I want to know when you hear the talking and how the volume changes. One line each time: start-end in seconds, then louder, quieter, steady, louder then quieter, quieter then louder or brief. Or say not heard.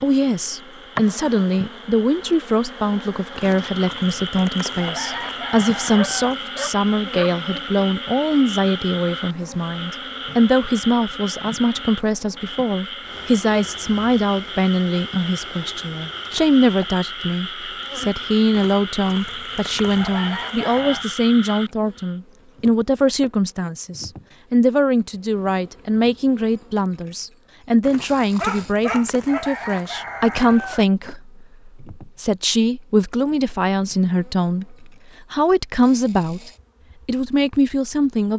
0.0-38.3 steady.